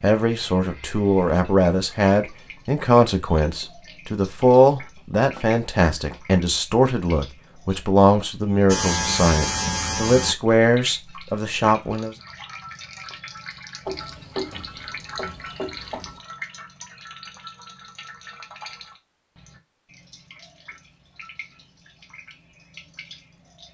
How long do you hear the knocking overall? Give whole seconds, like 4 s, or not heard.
4 s.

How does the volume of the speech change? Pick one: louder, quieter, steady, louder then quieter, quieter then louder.
steady.